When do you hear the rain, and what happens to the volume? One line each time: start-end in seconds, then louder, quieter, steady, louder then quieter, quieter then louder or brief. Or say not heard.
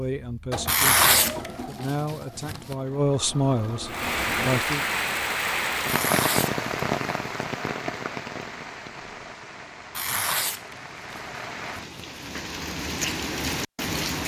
3.9-14.2 quieter then louder.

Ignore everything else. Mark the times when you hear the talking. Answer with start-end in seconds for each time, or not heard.
0.0-4.8.